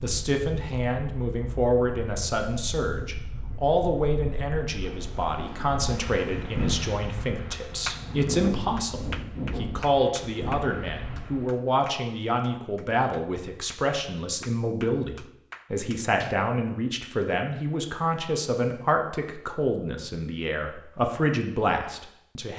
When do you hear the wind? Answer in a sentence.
The wind can be heard from 0.0 to 11.6 s.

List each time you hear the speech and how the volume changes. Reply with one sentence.
You can hear the speech from 0.0 to 22.5 s, at a steady volume.